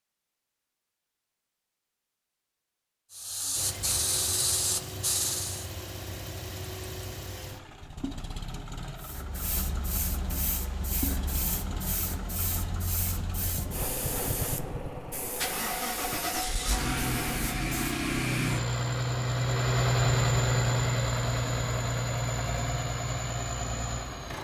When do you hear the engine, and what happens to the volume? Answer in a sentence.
The engine can be heard from 3.5 to 24.3 s, getting louder.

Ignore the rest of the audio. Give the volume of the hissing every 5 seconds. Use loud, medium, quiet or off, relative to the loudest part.
loud, loud, medium, medium, off.